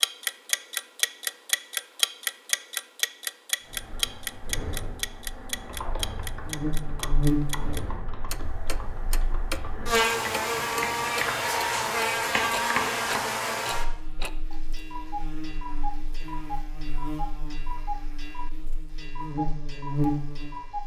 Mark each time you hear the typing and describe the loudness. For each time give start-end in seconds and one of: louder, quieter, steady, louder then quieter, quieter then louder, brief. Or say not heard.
3.6-13.3 louder.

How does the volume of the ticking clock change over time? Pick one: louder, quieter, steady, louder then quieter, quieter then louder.
quieter.